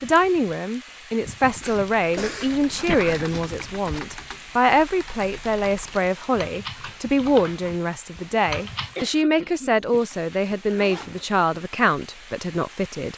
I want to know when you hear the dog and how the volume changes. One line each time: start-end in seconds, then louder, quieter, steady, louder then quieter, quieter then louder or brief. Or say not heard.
not heard.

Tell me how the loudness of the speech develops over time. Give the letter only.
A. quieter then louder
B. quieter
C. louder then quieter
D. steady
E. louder
D.